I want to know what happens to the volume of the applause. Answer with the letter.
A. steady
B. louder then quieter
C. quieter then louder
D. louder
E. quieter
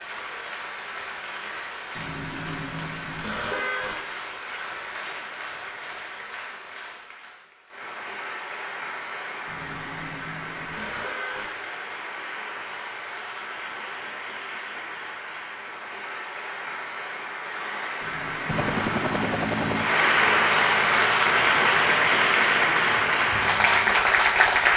D.